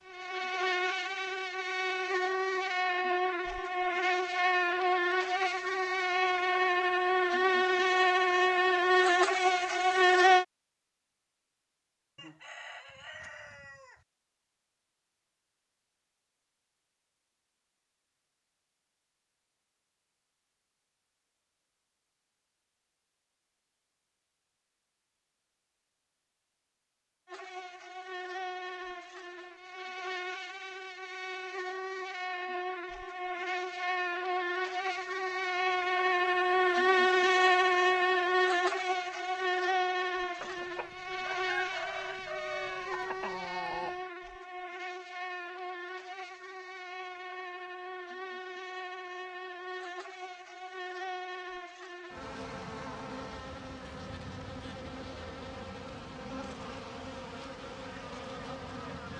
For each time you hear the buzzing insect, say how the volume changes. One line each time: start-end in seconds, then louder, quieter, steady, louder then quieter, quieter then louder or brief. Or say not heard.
0.0-10.4 louder
27.2-59.1 louder then quieter.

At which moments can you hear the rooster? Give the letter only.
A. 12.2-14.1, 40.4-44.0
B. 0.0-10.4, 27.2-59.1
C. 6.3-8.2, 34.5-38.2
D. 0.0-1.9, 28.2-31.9
A.